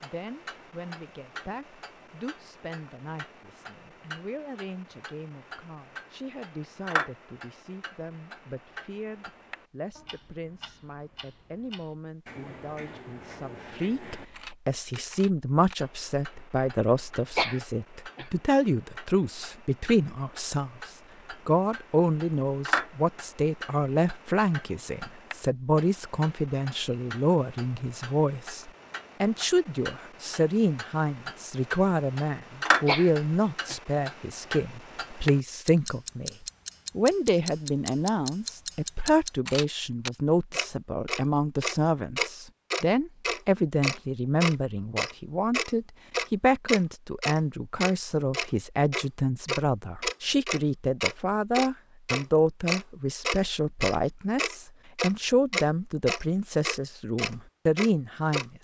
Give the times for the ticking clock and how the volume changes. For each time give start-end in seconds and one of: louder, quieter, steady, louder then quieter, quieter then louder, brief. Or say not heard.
0.0-58.5 louder.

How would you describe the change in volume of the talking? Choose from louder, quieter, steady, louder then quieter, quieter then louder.
louder.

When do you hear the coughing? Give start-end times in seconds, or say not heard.
17.4-18.3, 32.9-33.8.